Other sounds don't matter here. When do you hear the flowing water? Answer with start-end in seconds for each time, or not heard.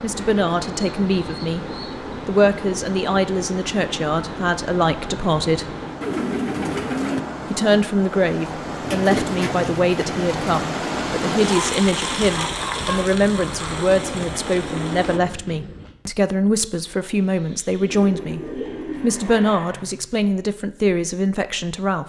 0.0-15.2.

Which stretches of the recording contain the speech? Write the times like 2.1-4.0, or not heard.
0.0-1.6, 2.2-5.7, 7.5-22.0.